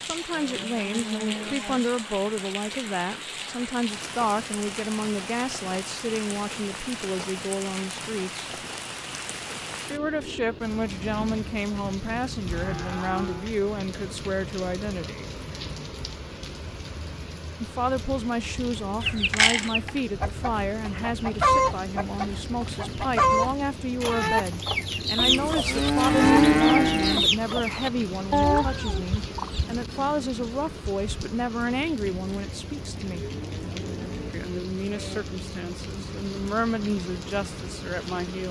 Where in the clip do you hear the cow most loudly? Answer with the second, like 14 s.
26 s.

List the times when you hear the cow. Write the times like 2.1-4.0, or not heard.
0.3-1.9, 11.2-13.5, 25.1-27.3, 32.8-35.2.